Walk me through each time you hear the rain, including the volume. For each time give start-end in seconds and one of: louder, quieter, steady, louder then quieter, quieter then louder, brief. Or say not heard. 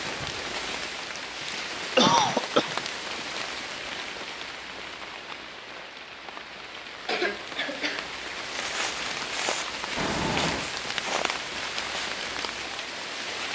0.0-13.4 quieter then louder.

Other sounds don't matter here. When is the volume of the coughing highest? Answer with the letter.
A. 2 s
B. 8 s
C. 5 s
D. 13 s
A.